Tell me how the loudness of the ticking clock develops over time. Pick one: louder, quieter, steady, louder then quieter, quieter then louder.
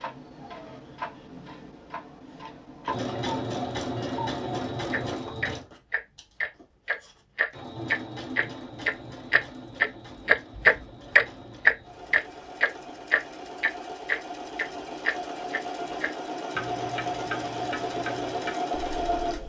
louder then quieter.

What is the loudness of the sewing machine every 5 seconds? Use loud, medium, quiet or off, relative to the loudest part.
loud, medium, medium, loud.